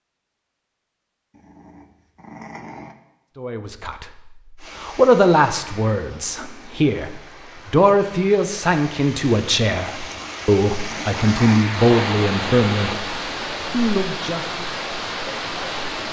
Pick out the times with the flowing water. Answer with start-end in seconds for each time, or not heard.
4.5-16.0.